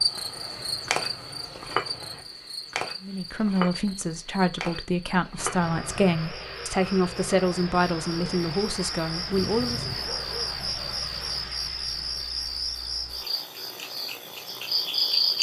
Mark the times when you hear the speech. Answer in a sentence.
You can hear the speech from 3.0 to 9.8 s.